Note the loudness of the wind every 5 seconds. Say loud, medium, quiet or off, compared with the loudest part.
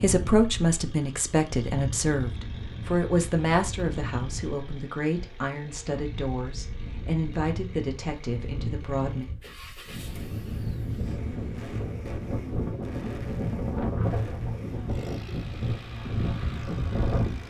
medium, medium, loud, loud.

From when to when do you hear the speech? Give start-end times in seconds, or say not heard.
0.0-9.2.